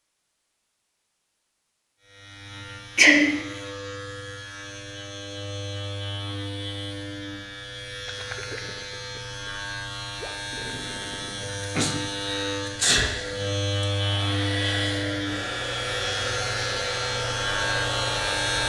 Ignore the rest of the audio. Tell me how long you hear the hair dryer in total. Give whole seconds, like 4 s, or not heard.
6 s.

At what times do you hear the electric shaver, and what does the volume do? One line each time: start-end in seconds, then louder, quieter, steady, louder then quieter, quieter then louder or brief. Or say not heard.
2.0-18.6 louder.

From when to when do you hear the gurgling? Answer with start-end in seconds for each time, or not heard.
8.1-11.5.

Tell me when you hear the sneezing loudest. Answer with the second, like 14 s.
3 s.